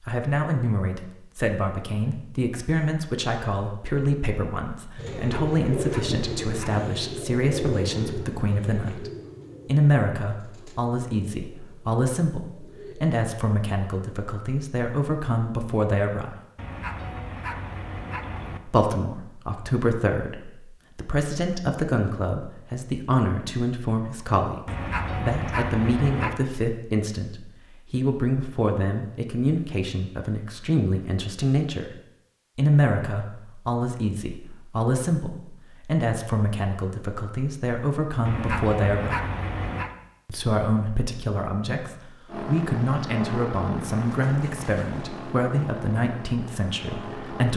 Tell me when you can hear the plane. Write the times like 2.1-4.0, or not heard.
42.2-47.5.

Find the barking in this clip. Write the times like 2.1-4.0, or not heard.
5.0-6.8, 16.6-18.6, 24.6-26.4, 38.2-40.0.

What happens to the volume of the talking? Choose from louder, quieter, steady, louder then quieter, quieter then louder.
steady.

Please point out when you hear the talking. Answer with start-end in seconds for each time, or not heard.
0.0-16.4, 18.6-31.9, 32.5-39.2, 40.2-47.5.